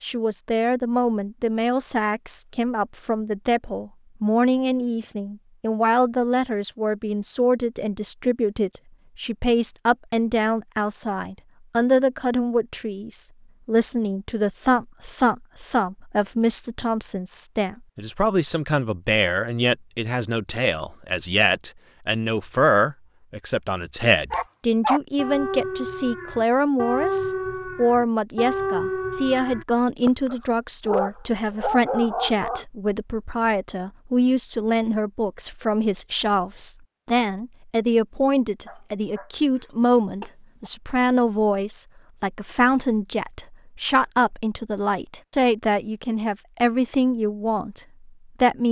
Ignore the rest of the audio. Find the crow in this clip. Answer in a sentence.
The crow can't be heard in this clip.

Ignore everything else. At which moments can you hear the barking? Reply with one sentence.
You can hear the barking from 24.3 to 32.6 s and from 38.6 to 40.7 s.